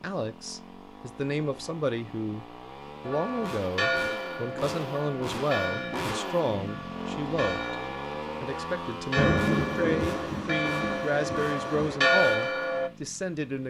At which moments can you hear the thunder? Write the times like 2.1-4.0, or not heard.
9.2-12.0.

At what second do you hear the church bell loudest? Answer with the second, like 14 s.
12 s.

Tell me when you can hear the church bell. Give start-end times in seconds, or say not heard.
3.0-12.9.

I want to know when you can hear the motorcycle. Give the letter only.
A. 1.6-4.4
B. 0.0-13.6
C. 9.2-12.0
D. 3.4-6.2
B.